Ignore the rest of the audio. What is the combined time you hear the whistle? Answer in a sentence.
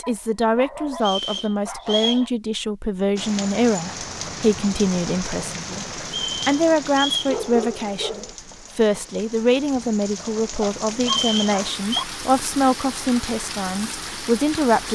The whistle can be heard for 4 seconds in total.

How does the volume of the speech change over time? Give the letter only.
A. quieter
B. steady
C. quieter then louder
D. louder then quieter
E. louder
B.